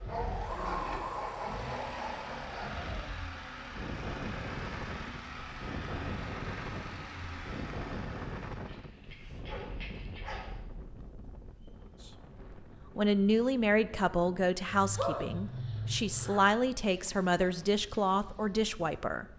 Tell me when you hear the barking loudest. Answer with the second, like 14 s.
15 s.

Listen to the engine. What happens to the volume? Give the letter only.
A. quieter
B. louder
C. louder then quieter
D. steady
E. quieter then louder
D.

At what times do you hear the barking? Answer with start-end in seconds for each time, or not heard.
0.1-2.9, 8.6-10.6, 14.7-16.4.